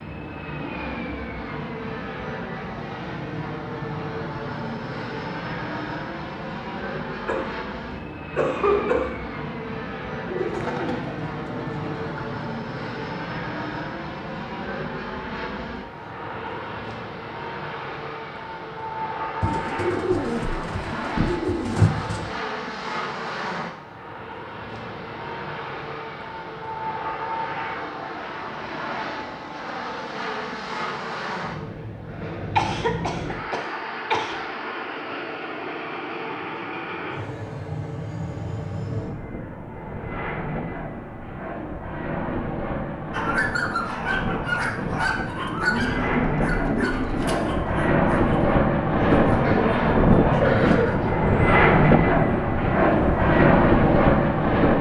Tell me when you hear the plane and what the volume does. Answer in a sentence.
The plane can be heard from 0.0 to 54.7 s, getting louder.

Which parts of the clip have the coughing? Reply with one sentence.
The coughing can be heard from 7.2 to 9.2 s, from 32.5 to 34.4 s and from 49.4 to 51.1 s.